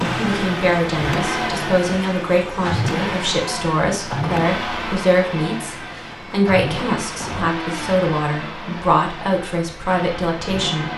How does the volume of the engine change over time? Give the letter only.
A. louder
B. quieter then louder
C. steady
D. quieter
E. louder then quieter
D.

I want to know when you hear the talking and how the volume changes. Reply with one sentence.
You can hear the talking from 0.1 to 10.9 s, at a steady volume.